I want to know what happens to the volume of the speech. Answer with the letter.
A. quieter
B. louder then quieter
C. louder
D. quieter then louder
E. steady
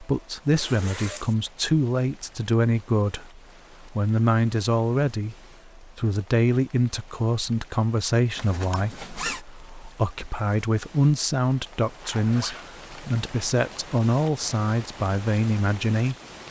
E.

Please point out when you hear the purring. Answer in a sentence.
The purring can't be heard in this clip.